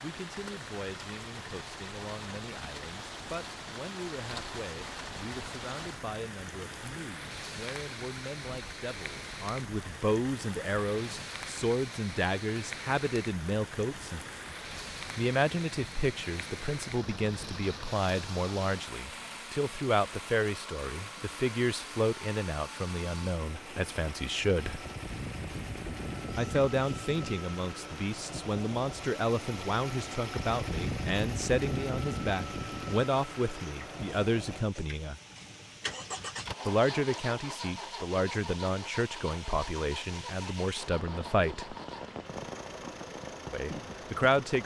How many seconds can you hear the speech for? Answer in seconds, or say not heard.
39 s.